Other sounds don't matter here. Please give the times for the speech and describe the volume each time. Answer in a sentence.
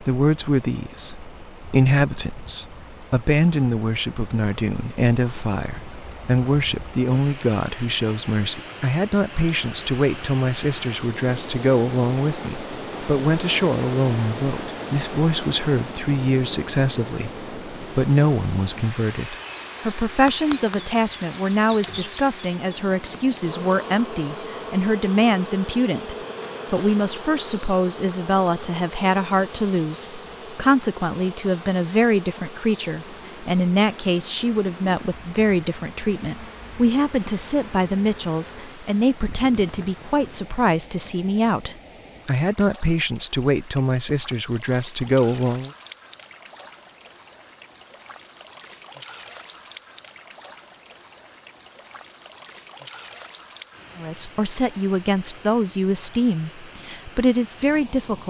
The speech can be heard from 0.0 to 45.7 s, at a steady volume; and from 54.0 to 58.2 s, getting quieter then louder.